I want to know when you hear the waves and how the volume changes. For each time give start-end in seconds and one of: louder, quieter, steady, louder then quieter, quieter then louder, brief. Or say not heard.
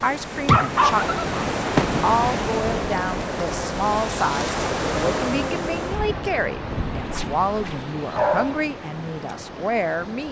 0.0-10.2 quieter.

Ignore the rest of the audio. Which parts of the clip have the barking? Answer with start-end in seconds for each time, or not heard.
0.5-1.9, 8.1-8.6.